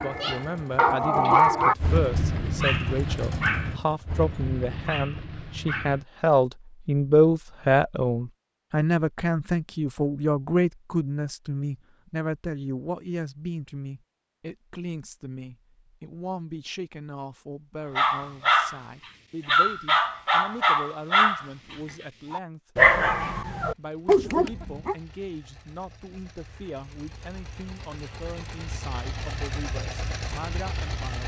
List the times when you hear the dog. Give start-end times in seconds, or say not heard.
0.0-6.0, 17.9-18.8, 19.4-24.9.